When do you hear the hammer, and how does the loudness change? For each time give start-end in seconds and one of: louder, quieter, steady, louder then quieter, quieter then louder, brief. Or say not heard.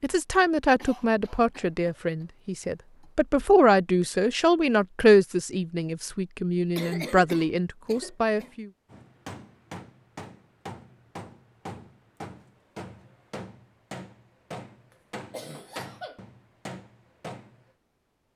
8.9-17.7 steady.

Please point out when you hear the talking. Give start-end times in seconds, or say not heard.
0.0-8.7.